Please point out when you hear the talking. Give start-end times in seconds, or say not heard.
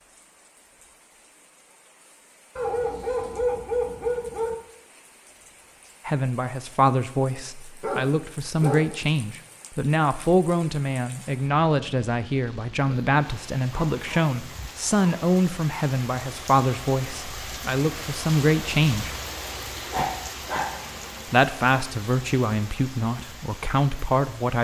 6.0-19.1, 21.2-24.6.